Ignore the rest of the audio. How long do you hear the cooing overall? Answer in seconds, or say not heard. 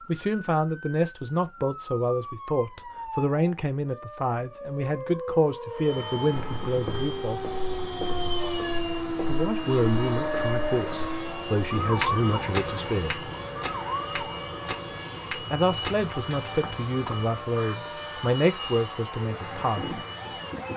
not heard.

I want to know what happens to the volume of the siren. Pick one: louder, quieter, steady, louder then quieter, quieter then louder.
louder then quieter.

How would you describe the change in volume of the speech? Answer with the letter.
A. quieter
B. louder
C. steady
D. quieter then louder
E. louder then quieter
C.